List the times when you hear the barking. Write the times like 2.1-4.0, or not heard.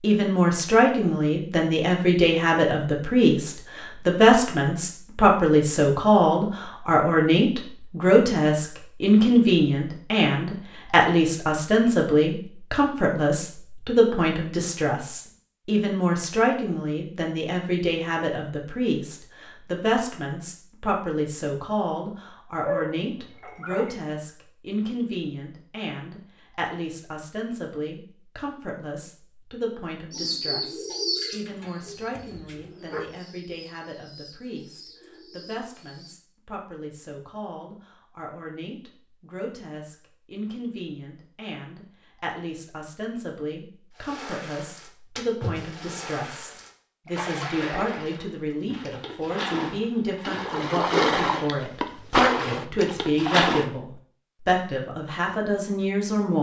22.6-23.9, 31.4-33.0.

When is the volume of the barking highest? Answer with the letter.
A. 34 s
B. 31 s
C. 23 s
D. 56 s
C.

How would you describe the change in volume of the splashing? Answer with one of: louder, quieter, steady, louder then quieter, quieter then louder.
louder.